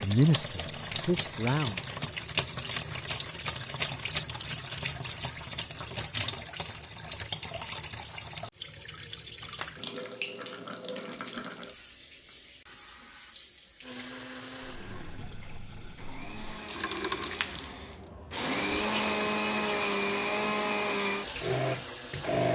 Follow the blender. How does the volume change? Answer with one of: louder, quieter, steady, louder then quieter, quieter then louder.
louder.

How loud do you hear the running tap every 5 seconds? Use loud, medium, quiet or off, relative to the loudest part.
loud, loud, medium, medium, medium.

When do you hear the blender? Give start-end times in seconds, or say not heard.
13.8-22.5.